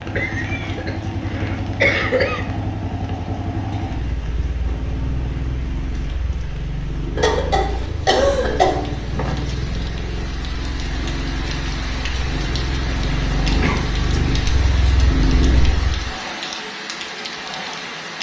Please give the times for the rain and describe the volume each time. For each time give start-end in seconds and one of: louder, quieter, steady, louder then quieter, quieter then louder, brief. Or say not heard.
0.0-18.1 louder.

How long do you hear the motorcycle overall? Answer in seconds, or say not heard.
16 s.